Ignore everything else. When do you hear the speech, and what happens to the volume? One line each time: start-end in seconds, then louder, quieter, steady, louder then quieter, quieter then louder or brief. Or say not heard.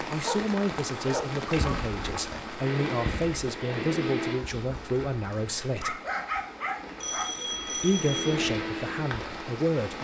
0.0-6.0 steady
7.8-9.9 brief.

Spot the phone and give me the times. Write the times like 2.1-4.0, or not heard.
1.6-2.5, 7.0-8.3.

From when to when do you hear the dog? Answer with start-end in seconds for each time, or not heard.
0.2-2.2, 5.8-7.3.